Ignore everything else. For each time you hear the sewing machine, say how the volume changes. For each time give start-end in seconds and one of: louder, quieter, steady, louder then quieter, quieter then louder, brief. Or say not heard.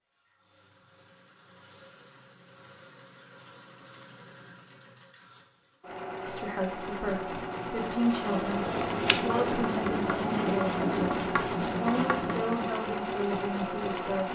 0.0-14.3 louder.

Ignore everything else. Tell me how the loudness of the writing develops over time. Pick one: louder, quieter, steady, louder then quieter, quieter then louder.
louder.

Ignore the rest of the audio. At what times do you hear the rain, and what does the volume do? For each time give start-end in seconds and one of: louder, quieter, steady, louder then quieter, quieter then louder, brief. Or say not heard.
not heard.